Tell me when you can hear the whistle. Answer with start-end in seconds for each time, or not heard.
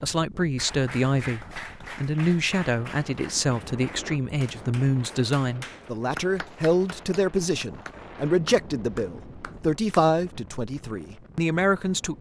not heard.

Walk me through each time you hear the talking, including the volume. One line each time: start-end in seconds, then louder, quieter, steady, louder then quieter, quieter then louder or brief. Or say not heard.
0.0-12.1 steady.